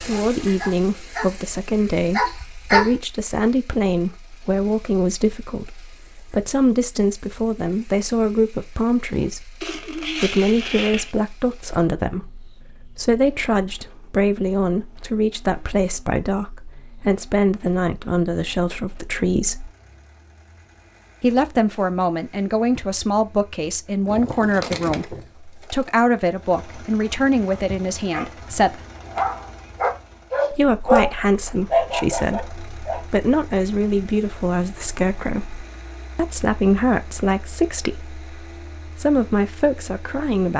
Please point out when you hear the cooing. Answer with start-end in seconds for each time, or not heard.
9.6-11.2, 24.1-25.9.